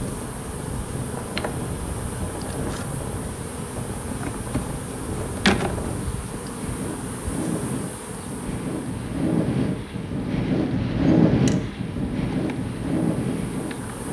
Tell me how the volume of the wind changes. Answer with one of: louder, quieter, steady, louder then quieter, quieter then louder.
louder.